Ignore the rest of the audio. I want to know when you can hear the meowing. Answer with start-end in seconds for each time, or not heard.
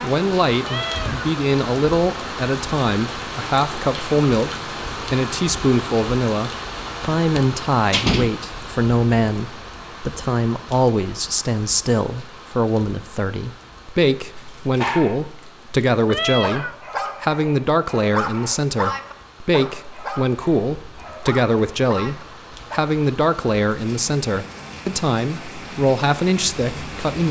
0.6-1.3, 16.1-16.8.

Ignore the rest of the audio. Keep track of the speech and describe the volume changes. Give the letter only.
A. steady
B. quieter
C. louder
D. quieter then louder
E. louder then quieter
A.